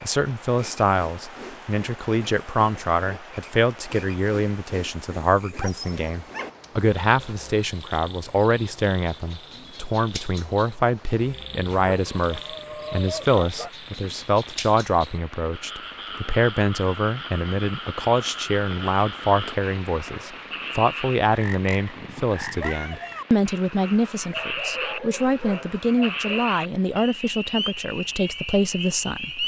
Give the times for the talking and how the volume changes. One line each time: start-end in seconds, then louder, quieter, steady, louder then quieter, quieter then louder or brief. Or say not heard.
0.0-29.4 steady.